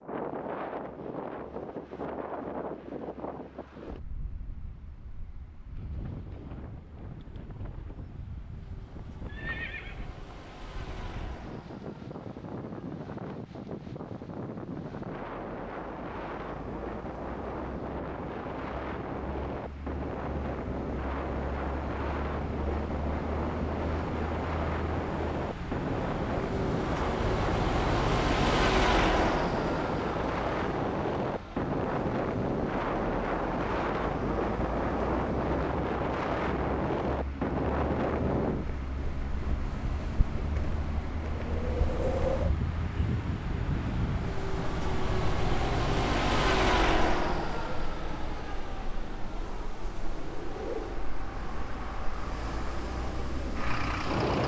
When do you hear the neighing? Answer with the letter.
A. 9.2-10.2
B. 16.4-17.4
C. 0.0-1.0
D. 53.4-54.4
A.